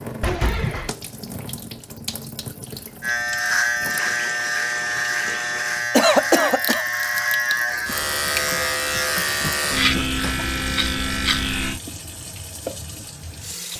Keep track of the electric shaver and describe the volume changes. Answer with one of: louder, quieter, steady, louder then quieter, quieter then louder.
steady.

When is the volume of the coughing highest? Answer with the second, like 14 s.
6 s.